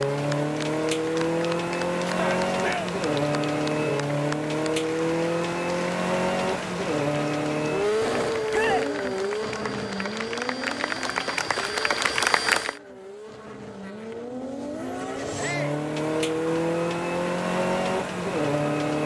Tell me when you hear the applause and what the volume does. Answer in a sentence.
You can hear the applause from 0.0 to 12.8 s, getting louder.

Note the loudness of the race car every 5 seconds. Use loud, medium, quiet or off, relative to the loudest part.
loud, loud, medium, loud.